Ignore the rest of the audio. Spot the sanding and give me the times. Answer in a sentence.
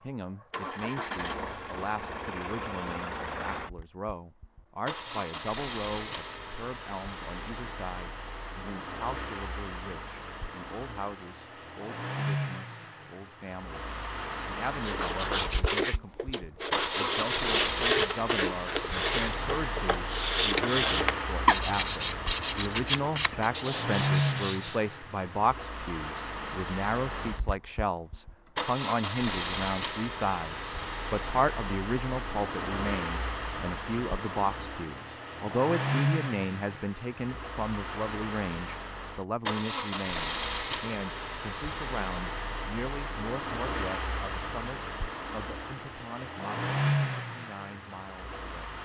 You can hear the sanding from 14.8 to 24.9 s.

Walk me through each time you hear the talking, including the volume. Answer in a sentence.
You can hear the talking from 0.0 to 48.8 s, getting louder then quieter.